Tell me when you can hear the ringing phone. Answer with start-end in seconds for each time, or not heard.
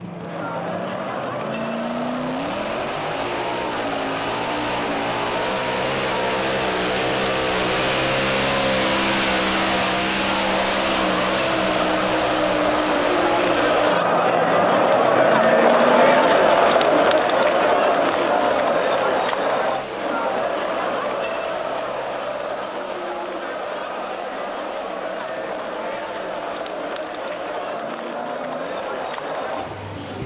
not heard.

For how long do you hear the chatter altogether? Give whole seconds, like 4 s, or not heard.
30 s.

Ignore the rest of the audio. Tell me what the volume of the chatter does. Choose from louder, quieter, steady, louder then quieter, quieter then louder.
louder then quieter.